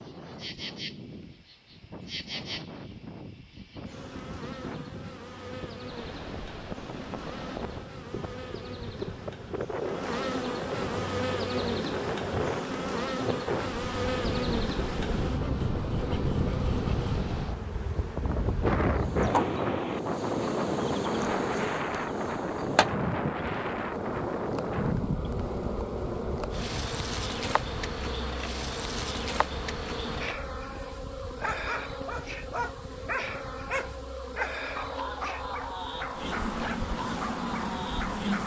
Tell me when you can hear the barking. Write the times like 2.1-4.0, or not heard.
31.4-38.4.